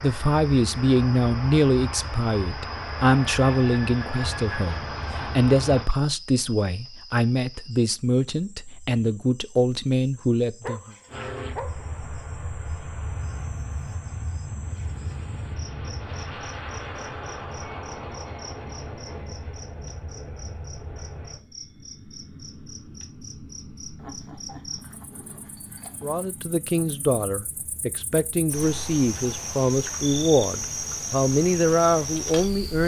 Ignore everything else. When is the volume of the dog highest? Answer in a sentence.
The volume of the dog peaks at 11 seconds.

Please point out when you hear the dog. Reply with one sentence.
You can hear the dog from 10.6 to 11.8 s and from 23.9 to 26.3 s.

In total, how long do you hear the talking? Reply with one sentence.
You can hear the talking for 18 seconds altogether.